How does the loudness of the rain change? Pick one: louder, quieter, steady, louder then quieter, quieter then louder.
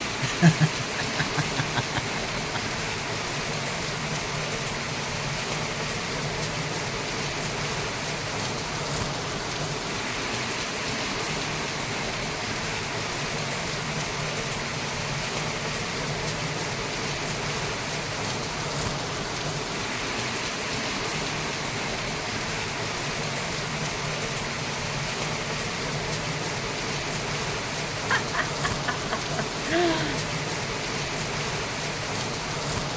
steady.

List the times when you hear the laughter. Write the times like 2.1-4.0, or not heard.
0.2-2.6, 28.1-30.2.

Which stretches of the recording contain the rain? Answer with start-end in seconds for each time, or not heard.
0.0-32.9.